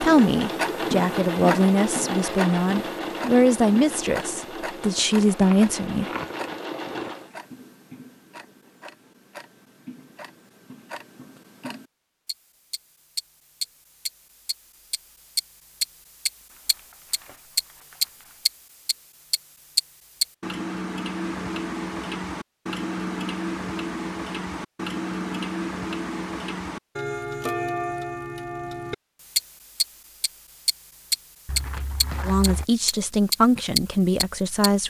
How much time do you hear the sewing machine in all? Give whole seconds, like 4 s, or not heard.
7 s.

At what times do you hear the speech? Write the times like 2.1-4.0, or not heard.
0.0-6.0, 32.2-34.8.